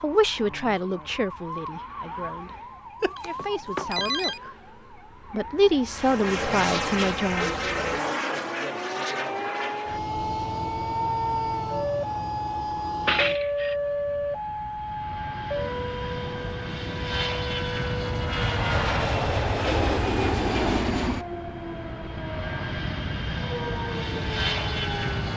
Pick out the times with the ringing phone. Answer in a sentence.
You can hear the ringing phone from 3.0 to 4.4 s and from 13.1 to 13.8 s.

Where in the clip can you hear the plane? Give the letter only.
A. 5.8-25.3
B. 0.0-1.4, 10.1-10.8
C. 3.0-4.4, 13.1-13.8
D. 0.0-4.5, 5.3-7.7
A.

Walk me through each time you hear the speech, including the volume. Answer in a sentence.
The speech can be heard from 0.0 to 4.5 s, getting quieter then louder; and briefly from 5.3 to 7.7 s.